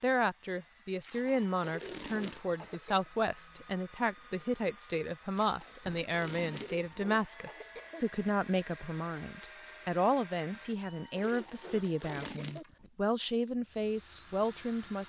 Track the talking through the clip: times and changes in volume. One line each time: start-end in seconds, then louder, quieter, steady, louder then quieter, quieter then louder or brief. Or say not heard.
0.0-15.0 steady.